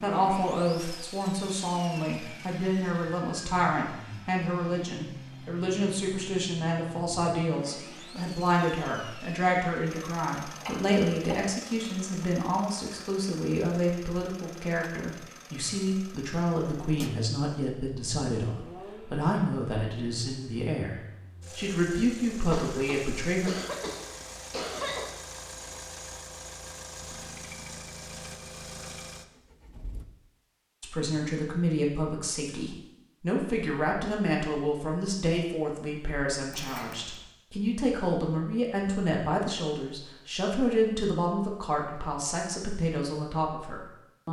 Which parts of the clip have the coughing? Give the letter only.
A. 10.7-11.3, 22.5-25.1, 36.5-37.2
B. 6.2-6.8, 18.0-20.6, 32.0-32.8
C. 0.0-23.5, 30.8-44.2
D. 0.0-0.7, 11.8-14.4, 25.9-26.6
A.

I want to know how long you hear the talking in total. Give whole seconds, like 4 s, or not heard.
37 s.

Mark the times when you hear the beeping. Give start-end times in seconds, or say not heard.
not heard.